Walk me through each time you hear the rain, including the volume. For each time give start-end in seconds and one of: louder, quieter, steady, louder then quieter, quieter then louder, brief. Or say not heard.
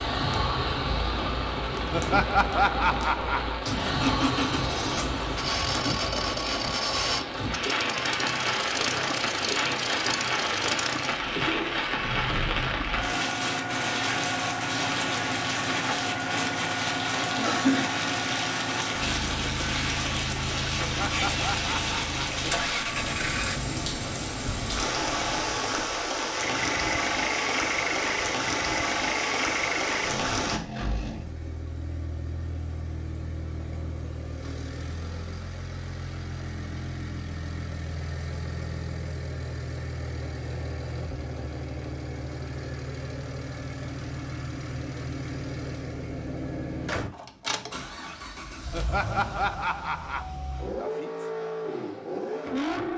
0.0-30.6 steady.